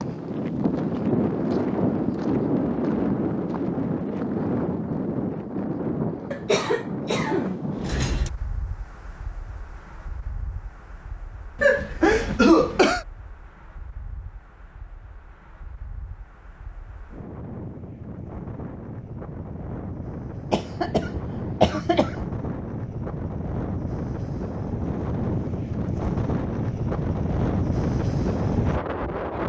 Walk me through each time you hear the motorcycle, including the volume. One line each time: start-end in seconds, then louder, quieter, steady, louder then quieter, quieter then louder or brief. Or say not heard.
not heard.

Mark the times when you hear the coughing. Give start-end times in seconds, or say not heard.
6.3-8.3, 11.6-13.1, 20.5-22.1.